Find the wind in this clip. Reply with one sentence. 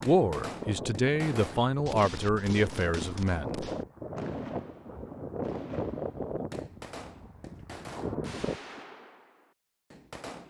You can hear the wind from 0.1 to 8.6 s.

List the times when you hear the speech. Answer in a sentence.
You can hear the speech from 0.0 to 3.6 s.